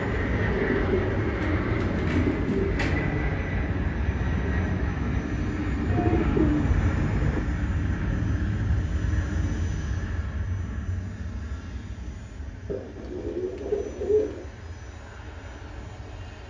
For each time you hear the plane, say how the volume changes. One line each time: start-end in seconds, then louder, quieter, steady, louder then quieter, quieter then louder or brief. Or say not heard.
0.0-16.4 quieter.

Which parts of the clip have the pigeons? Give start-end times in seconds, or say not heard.
0.4-3.0, 5.8-7.5, 12.7-14.4.